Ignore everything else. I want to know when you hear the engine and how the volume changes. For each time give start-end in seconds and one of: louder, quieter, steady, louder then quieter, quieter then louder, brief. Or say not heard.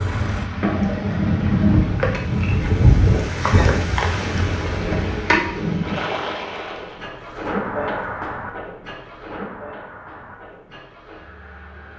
0.0-1.8 brief
6.5-11.9 quieter.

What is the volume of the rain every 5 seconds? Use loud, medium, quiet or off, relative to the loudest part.
loud, loud, off.